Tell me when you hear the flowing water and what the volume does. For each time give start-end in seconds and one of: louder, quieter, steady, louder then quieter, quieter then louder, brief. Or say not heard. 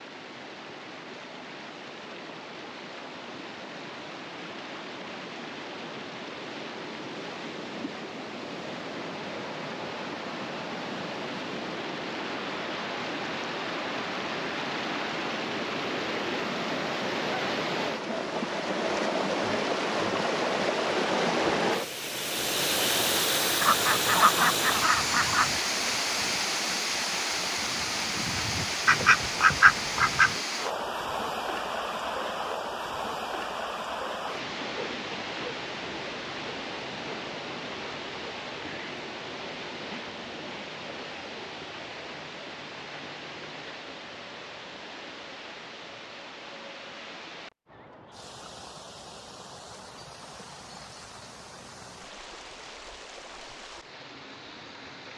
0.0-55.1 louder then quieter.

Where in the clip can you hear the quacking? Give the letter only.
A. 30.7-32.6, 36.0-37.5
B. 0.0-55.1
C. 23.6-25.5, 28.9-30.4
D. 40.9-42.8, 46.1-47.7
C.